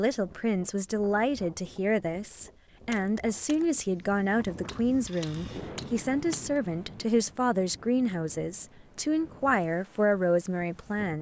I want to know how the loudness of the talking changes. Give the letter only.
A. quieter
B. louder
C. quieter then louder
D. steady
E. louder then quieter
D.